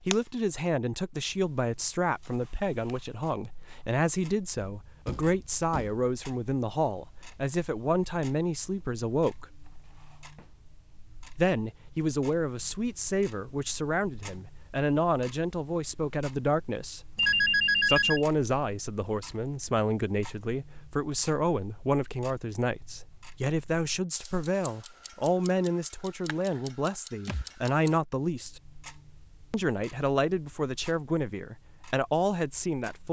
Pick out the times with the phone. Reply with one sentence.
The phone can be heard from 17.1 to 18.2 s.